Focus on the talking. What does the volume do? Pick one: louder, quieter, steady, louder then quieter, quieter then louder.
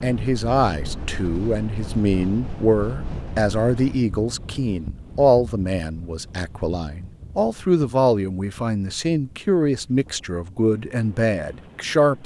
steady.